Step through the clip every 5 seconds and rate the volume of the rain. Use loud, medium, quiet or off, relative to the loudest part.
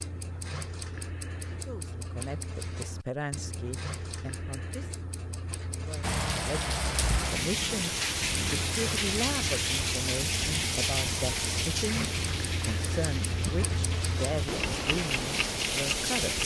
off, loud, loud, loud.